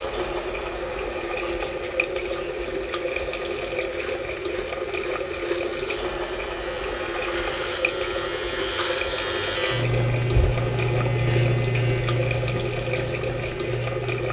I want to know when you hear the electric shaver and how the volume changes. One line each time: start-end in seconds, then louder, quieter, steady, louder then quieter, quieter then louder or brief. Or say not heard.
0.0-14.2 louder.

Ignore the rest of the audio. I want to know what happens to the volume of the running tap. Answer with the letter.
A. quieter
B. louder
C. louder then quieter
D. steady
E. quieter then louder
D.